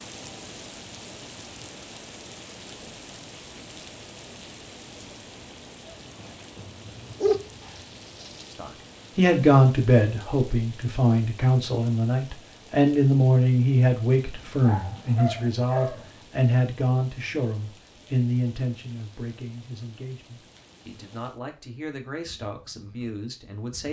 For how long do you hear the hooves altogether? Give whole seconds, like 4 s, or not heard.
not heard.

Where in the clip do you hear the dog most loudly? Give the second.
7 s.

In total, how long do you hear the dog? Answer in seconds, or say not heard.
3 s.